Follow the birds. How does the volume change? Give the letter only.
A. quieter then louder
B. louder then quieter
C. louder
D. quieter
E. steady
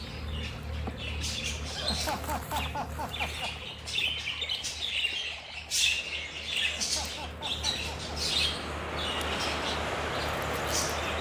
B.